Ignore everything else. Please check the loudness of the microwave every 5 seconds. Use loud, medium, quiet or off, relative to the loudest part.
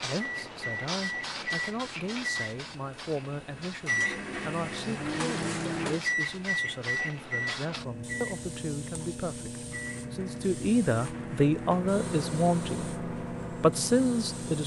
loud, loud, medium.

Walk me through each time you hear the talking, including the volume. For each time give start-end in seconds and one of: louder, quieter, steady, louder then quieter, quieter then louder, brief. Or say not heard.
0.0-14.6 louder.